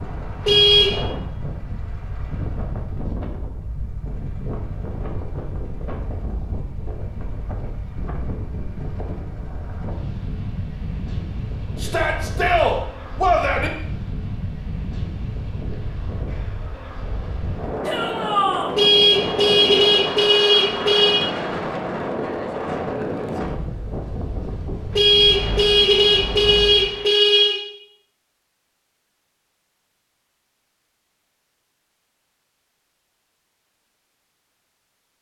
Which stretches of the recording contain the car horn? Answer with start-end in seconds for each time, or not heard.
0.5-1.0, 18.8-21.2, 24.9-27.6.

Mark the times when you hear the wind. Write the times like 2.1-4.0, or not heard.
0.0-27.1.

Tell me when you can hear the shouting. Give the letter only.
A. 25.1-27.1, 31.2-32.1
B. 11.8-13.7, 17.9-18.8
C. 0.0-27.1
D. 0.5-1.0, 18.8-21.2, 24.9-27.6
B.